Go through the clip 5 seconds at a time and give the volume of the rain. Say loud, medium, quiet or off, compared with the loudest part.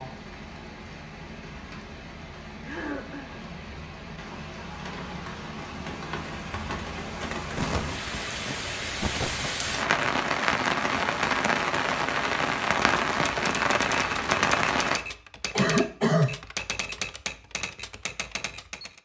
quiet, medium, loud, off.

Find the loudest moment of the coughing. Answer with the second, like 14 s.
16 s.